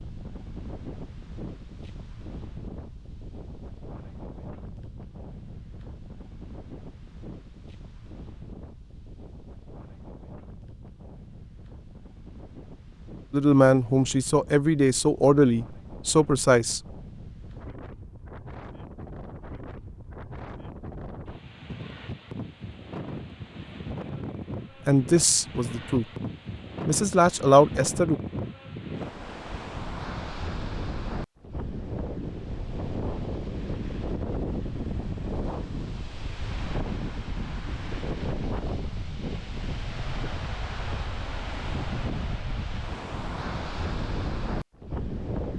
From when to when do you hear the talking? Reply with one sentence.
You can hear the talking from 13.3 to 16.8 s, from 24.9 to 26.1 s and from 26.9 to 28.1 s.